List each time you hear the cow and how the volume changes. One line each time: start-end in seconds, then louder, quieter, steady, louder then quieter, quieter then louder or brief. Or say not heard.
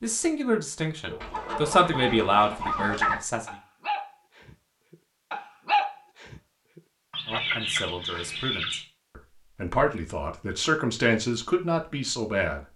not heard.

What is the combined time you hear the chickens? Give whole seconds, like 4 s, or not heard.
4 s.